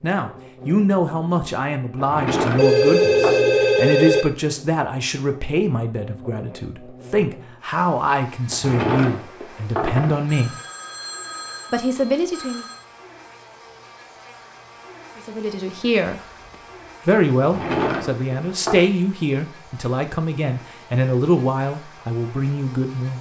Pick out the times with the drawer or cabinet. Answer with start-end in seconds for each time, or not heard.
2.0-3.4, 8.5-10.3, 17.4-18.9.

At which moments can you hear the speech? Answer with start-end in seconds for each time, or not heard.
0.0-10.6, 11.7-12.7, 15.2-16.2, 17.1-23.1.